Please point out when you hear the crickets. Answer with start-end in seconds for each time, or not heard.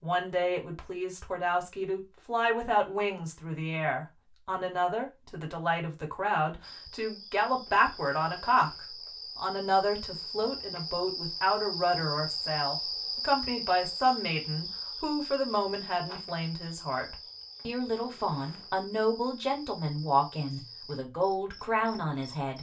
6.6-22.4.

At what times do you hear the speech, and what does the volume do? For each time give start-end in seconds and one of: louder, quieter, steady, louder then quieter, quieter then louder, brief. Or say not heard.
0.0-22.5 steady.